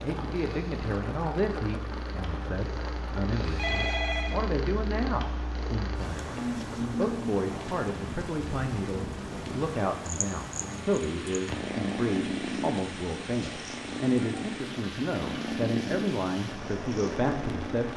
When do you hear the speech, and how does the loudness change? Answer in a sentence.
You can hear the speech from 0.0 to 17.9 s, at a steady volume.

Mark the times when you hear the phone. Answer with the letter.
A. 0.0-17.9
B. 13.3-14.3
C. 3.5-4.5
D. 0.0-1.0
C.